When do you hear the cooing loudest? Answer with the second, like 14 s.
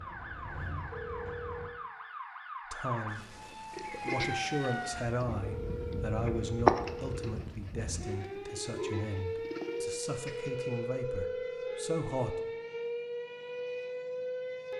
7 s.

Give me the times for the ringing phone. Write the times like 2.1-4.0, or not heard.
0.9-1.8, 5.4-7.3, 10.2-12.0.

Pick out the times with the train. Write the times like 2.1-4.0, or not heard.
0.0-1.7.